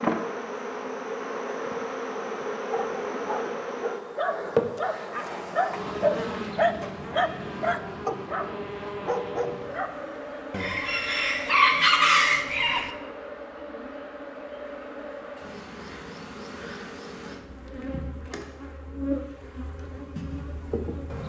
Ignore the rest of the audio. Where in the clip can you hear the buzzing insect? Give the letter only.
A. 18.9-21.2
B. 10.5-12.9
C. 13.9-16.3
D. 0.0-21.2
D.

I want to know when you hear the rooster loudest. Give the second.
12 s.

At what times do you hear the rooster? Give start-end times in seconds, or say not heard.
10.5-12.9.